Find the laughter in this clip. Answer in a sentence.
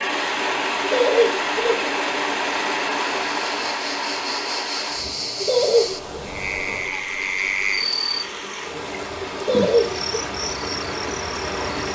You can hear the laughter from 0.8 to 1.9 s, from 5.3 to 6.0 s and from 9.3 to 10.2 s.